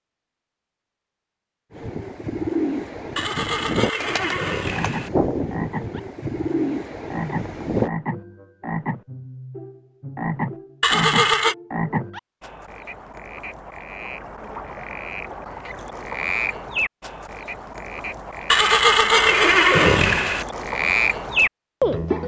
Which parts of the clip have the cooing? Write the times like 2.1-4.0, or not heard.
1.7-7.9.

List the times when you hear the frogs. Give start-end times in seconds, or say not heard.
4.7-22.2.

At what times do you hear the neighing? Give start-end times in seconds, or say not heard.
3.1-5.1, 10.8-11.6, 18.5-20.4.